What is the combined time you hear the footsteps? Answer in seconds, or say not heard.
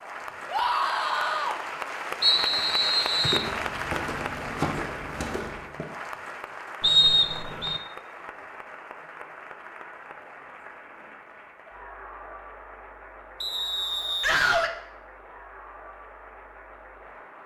3 s.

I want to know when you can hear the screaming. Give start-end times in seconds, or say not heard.
0.5-1.6, 14.2-14.8.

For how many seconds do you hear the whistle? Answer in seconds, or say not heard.
3 s.